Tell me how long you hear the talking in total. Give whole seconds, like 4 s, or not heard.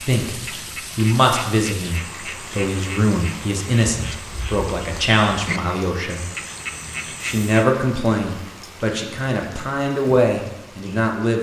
10 s.